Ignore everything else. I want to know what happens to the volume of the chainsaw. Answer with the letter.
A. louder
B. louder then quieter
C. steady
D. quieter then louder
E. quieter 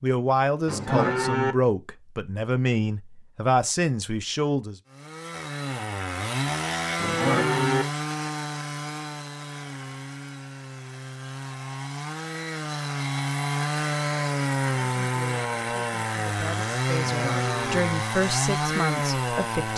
D.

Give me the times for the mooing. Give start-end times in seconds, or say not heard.
0.7-1.6, 7.0-7.8, 17.0-17.8.